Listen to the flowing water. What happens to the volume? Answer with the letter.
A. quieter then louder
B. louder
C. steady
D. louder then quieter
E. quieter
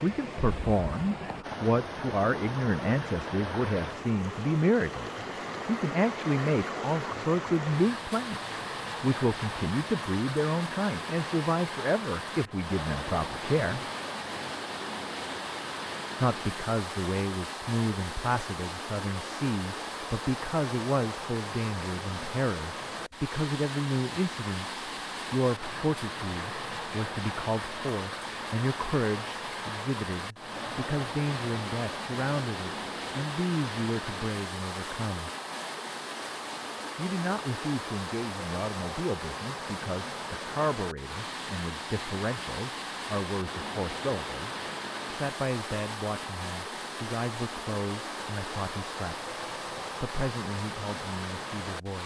C.